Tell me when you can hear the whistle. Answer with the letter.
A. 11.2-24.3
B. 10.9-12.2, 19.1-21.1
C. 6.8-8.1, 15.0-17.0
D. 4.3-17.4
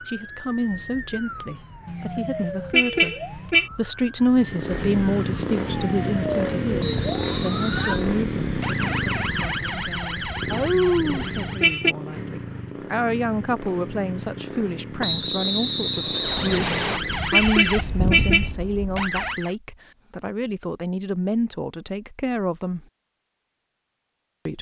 C.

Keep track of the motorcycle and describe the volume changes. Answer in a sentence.
The loudness of the motorcycle goes down.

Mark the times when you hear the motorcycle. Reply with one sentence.
The motorcycle can be heard from 4.3 to 17.4 s.